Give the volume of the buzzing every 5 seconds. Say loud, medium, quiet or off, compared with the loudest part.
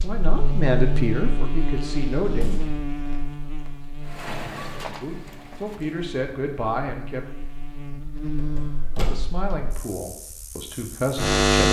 medium, quiet, loud.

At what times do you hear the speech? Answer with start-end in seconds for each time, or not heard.
0.0-2.5, 5.0-7.2, 9.0-11.4.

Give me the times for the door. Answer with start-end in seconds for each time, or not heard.
2.4-3.7, 8.3-9.5.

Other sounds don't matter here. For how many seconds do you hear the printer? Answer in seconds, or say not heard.
2 s.